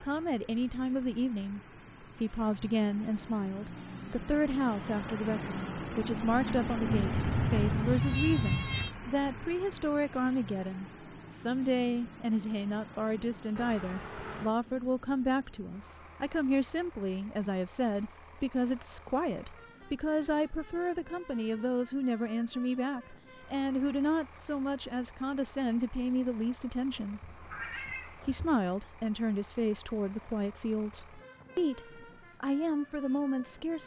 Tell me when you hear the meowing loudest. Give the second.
8 s.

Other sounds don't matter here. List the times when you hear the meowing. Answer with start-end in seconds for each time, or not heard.
6.9-8.9, 13.6-14.6, 26.9-28.6.